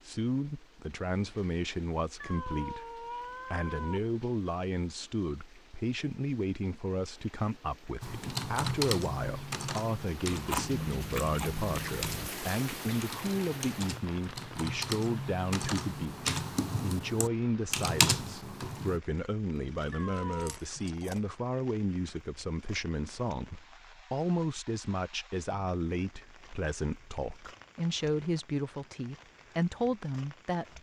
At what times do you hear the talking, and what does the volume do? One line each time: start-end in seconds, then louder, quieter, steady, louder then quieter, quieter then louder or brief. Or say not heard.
0.1-30.7 steady.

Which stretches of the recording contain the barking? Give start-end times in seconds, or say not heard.
not heard.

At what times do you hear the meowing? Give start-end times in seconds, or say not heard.
2.2-4.1, 19.9-20.6.